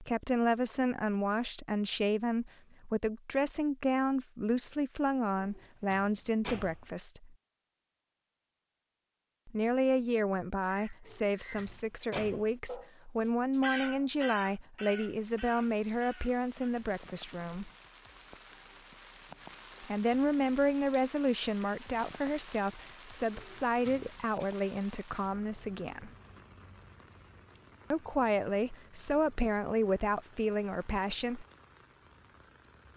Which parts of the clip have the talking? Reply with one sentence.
The talking can be heard from 0.0 to 7.3 s, from 9.4 to 17.7 s, from 19.8 to 26.1 s and from 27.9 to 31.4 s.